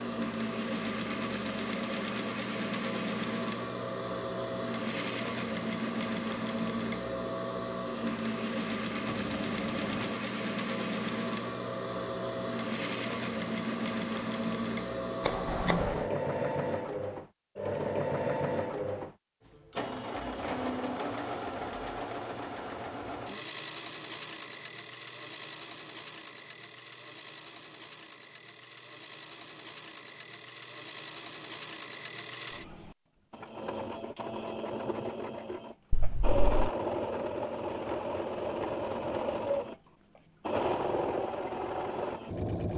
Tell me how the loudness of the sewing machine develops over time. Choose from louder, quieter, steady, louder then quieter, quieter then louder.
quieter then louder.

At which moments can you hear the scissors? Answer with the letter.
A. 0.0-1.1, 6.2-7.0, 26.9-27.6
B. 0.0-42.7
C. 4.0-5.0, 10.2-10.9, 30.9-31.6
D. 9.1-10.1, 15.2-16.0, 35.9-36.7
D.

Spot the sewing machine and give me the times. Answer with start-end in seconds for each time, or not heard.
0.0-42.7.